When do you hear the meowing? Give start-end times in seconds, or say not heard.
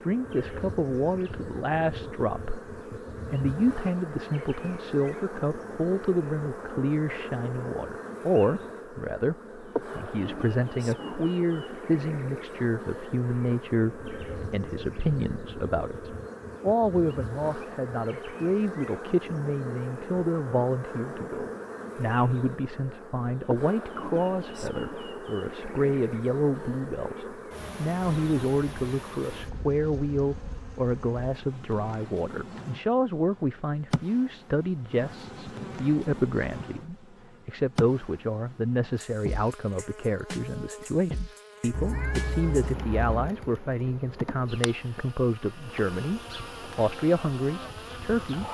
41.7-43.3.